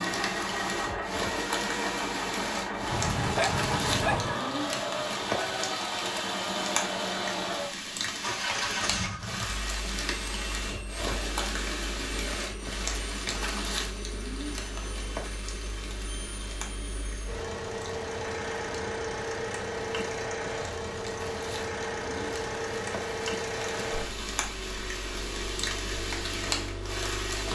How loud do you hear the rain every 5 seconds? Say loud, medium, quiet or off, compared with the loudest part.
loud, loud, loud, medium, medium, loud.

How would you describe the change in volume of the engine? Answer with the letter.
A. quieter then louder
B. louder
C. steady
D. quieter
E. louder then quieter
A.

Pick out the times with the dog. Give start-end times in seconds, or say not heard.
2.9-4.4.